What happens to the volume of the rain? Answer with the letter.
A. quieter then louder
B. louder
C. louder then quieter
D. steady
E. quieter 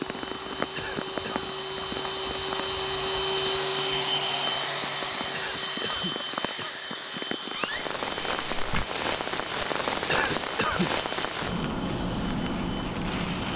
A.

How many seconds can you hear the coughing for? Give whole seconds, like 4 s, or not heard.
3 s.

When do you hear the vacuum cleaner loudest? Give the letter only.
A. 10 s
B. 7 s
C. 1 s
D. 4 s
D.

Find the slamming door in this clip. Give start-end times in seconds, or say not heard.
7.5-8.8.